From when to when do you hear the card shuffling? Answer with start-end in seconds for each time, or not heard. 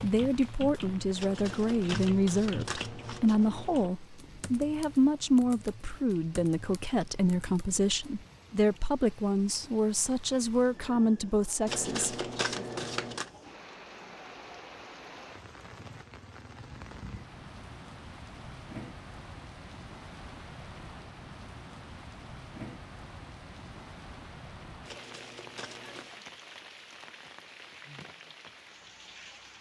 1.1-3.9, 11.7-13.3, 24.9-26.2.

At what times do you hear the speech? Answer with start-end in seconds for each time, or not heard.
0.0-12.7.